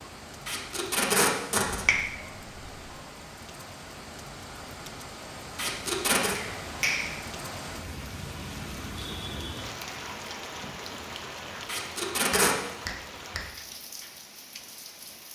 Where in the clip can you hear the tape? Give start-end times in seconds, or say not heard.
0.5-1.9, 5.5-6.3, 11.7-12.6.